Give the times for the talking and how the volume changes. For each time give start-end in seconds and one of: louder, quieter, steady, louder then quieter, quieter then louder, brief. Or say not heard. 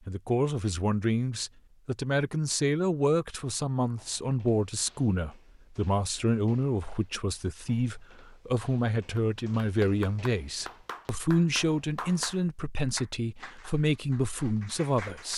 0.1-15.3 steady.